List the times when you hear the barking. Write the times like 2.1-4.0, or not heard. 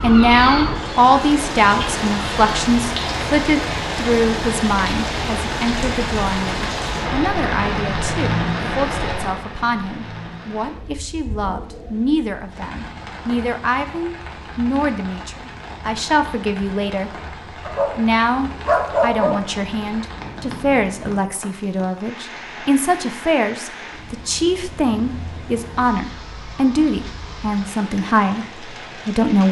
17.6-19.9.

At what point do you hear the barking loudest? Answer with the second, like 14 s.
19 s.